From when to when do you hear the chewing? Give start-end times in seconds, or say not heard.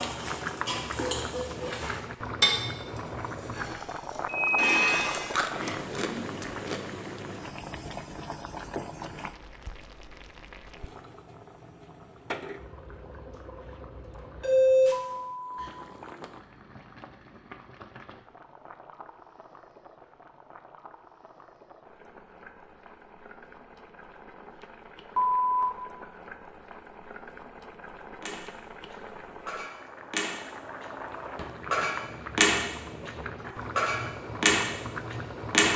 5.2-6.8.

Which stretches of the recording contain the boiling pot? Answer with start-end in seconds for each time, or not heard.
0.0-35.7.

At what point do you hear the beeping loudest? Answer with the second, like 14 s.
15 s.